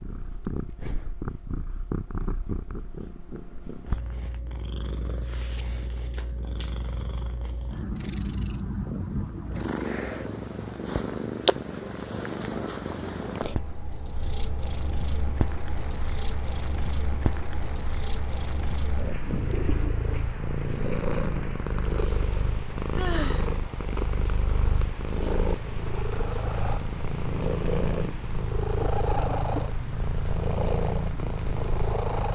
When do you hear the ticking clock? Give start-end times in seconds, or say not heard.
not heard.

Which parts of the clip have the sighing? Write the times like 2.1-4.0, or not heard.
22.9-23.6.